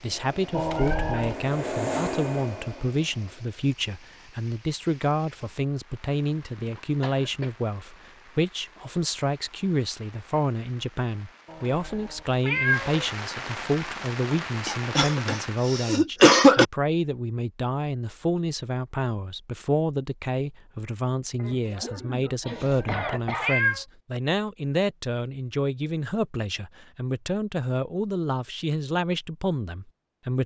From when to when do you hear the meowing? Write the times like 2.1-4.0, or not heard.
0.5-1.4, 11.4-13.0, 22.4-23.8.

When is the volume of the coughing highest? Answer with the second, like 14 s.
16 s.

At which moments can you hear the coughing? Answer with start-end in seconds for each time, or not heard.
6.5-7.5, 14.7-16.6, 21.4-23.6.